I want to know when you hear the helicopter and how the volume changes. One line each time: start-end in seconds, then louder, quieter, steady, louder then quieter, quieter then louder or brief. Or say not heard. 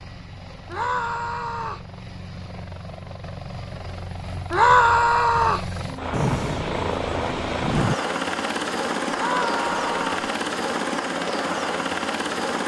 0.0-12.6 louder.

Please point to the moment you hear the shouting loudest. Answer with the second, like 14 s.
5 s.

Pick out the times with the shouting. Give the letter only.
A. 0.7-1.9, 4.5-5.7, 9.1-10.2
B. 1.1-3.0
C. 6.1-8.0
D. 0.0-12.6
A.